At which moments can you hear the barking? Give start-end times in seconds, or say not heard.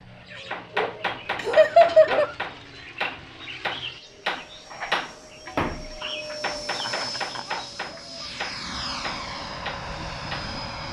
0.7-2.3, 7.4-8.3.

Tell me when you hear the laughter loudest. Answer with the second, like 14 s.
2 s.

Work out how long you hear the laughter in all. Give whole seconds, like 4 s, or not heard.
2 s.